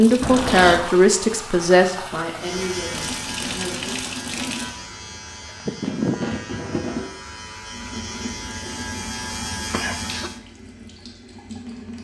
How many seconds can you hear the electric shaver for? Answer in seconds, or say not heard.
8 s.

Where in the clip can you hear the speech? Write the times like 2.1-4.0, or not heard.
0.0-4.0.